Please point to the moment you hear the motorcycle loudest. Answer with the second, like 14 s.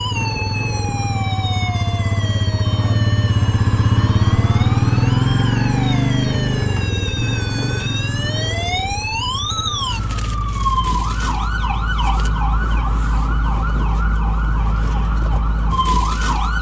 5 s.